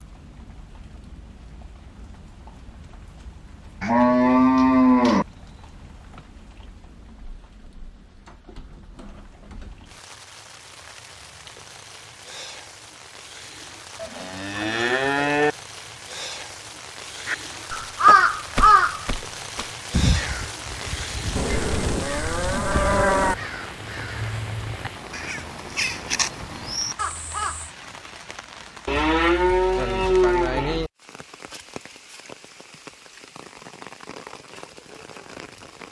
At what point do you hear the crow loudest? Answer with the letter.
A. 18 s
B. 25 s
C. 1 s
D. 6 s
A.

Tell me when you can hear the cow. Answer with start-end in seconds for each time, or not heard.
3.8-5.2, 14.0-15.6, 21.4-23.4, 28.9-30.9.